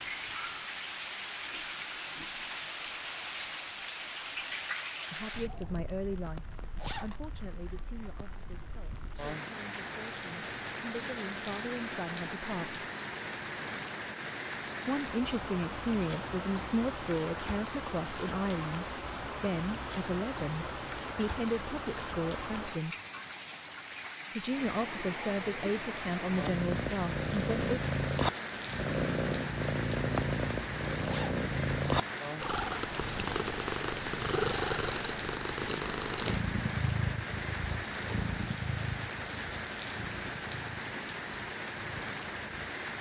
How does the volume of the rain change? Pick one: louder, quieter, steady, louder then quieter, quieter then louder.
steady.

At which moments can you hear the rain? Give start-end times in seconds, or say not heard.
0.0-42.9.